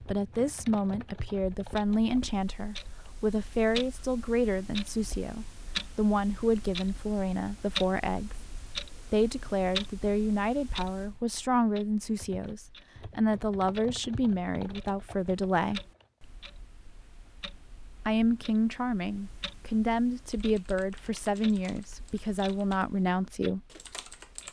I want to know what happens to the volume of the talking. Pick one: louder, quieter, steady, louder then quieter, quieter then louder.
steady.